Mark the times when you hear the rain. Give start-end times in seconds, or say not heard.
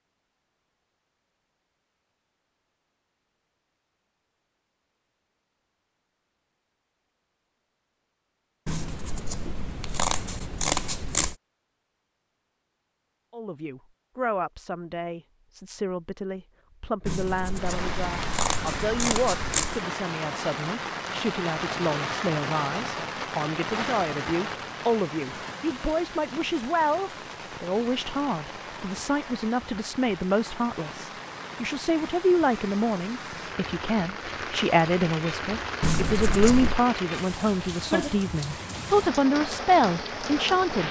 17.5-40.8.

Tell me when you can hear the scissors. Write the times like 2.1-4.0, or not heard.
8.7-11.3, 17.1-19.8, 35.8-36.8.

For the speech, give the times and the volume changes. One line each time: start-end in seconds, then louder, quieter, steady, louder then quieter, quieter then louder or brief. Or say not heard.
13.3-40.8 louder.